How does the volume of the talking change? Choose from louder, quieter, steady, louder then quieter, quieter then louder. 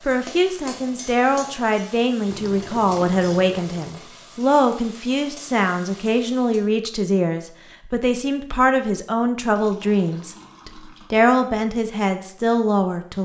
steady.